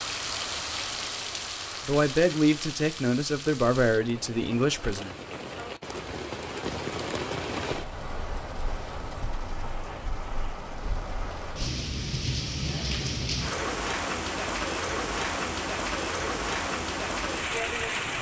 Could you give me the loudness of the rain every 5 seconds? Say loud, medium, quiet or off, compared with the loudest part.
medium, medium, loud, loud.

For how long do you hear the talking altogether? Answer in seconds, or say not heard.
3 s.